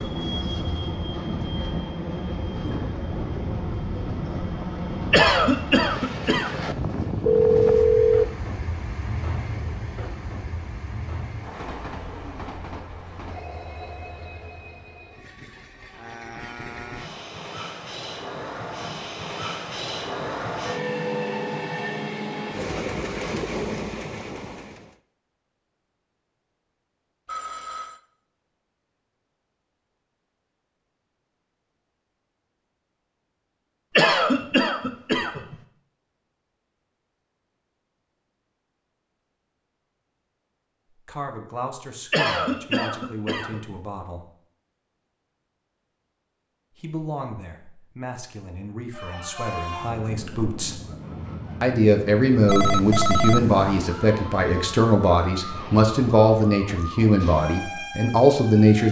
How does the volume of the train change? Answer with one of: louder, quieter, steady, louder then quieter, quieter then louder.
quieter then louder.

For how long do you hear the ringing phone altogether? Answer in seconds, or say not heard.
3 s.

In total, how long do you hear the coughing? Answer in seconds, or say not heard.
5 s.